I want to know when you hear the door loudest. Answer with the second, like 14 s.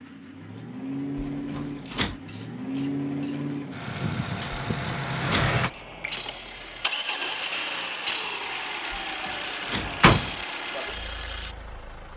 10 s.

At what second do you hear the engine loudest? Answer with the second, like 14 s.
5 s.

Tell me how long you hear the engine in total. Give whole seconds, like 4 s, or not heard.
12 s.